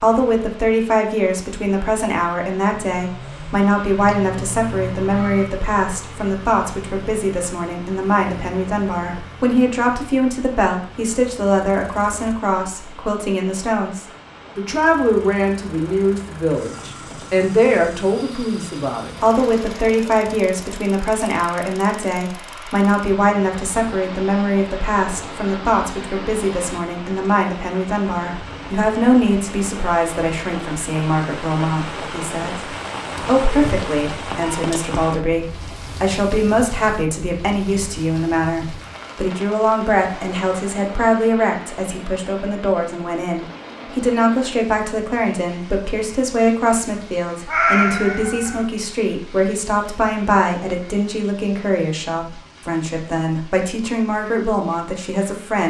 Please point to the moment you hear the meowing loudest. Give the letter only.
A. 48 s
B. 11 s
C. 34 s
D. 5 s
A.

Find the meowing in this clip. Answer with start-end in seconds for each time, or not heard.
4.0-5.5, 33.4-34.6, 47.5-48.6.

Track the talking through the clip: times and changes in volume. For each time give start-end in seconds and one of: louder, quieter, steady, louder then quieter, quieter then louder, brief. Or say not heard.
0.0-55.6 steady.